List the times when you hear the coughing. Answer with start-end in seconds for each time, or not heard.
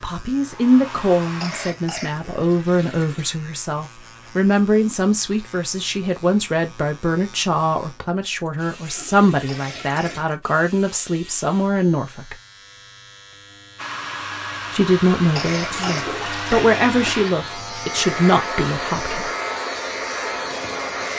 1.4-2.2, 9.4-10.2, 15.3-17.4.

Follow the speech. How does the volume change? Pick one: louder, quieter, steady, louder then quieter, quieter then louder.
steady.